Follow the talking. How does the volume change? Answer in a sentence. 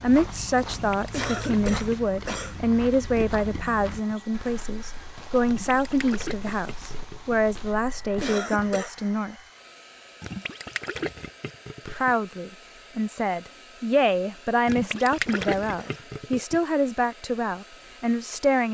The loudness of the talking stays about the same.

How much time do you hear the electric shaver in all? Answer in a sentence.
You can't hear the electric shaver here.